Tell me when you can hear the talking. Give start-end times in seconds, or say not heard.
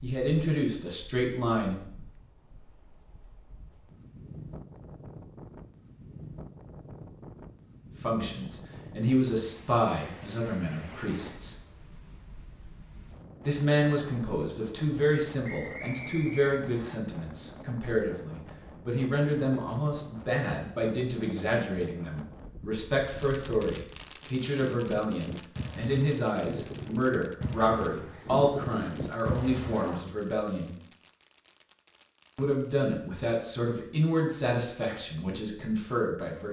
0.0-1.8, 8.0-11.6, 13.4-30.8, 32.4-36.4.